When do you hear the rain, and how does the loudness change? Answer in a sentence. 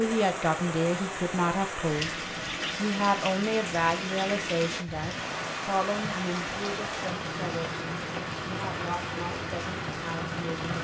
You can hear the rain from 0.0 to 10.7 s, at a steady volume.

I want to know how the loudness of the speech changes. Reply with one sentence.
The loudness of the speech goes down.